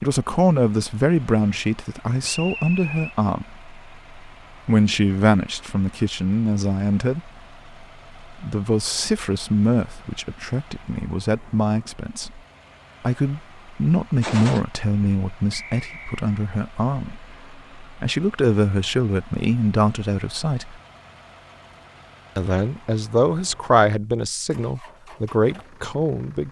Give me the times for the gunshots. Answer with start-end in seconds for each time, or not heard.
14.2-14.7.